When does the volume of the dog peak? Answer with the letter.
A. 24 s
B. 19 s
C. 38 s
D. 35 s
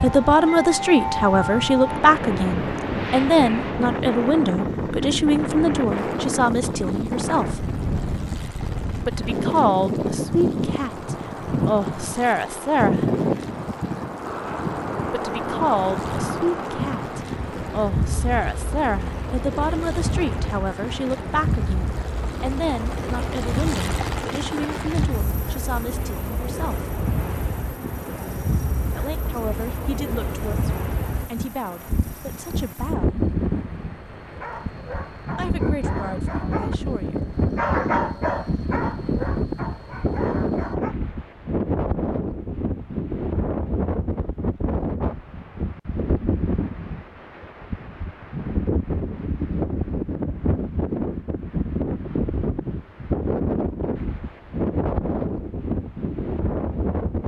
C.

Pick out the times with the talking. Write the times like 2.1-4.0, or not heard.
0.0-7.7, 9.1-13.1, 15.1-26.9, 28.9-33.2, 35.4-37.2.